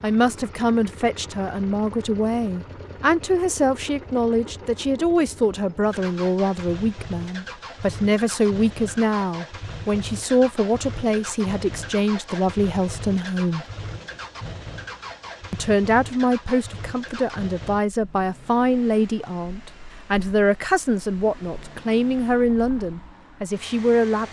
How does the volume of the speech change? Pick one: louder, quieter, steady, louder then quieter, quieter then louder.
steady.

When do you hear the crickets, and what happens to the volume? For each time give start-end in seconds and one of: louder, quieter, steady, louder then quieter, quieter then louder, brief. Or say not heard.
not heard.